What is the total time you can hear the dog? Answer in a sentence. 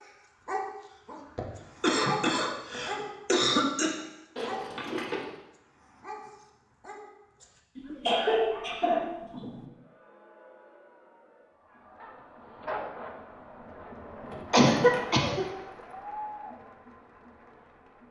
You can hear the dog for 12 seconds altogether.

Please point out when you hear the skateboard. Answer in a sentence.
You can't hear the skateboard here.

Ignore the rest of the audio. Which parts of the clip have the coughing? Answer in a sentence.
The coughing can be heard from 1.4 to 4.0 s, from 7.8 to 9.7 s and from 14.5 to 15.4 s.